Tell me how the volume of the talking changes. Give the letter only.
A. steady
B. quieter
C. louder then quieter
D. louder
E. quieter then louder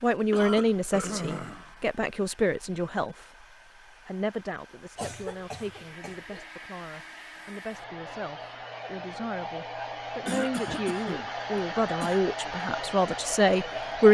E.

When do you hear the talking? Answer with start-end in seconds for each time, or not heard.
0.0-3.5, 4.0-14.0.